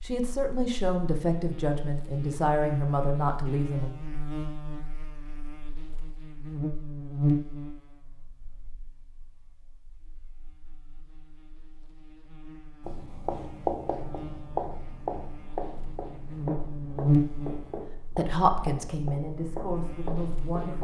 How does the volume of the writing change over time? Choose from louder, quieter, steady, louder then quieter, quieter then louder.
quieter.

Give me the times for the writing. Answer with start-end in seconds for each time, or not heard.
12.8-20.7.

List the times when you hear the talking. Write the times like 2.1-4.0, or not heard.
0.0-3.9, 18.1-20.7.